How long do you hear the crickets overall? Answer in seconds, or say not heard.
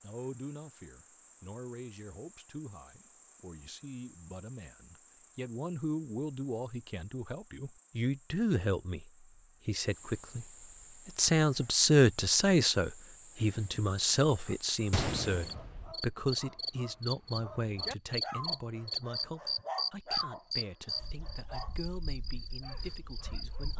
24 s.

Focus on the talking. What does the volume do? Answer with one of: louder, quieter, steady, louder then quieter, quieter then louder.
louder then quieter.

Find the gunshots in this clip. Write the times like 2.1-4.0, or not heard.
14.9-15.9.